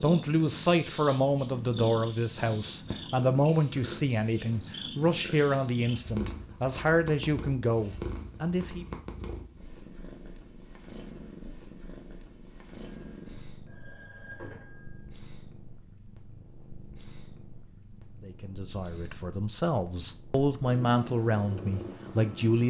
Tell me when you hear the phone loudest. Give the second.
14 s.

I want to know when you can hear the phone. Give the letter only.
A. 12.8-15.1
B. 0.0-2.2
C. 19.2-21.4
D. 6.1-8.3
A.